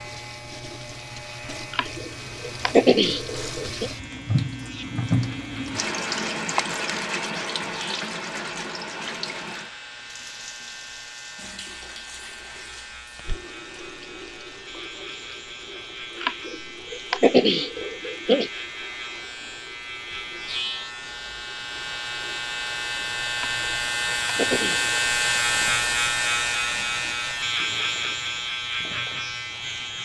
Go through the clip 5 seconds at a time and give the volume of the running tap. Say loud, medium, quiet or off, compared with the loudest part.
medium, loud, quiet, quiet, quiet, quiet.